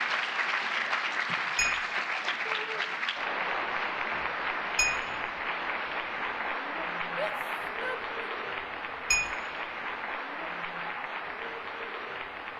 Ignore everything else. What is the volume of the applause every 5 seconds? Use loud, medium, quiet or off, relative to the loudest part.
loud, loud, medium.